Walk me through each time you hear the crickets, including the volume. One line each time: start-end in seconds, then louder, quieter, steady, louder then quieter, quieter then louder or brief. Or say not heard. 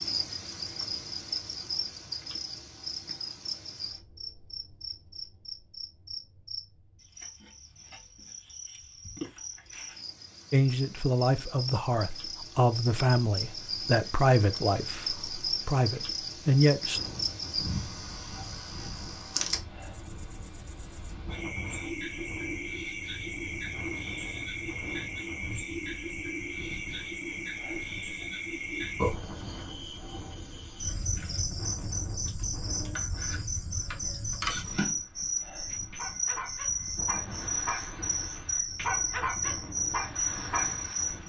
0.0-41.2 louder.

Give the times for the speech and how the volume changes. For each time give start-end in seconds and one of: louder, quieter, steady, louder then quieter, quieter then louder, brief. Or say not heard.
10.5-17.0 steady.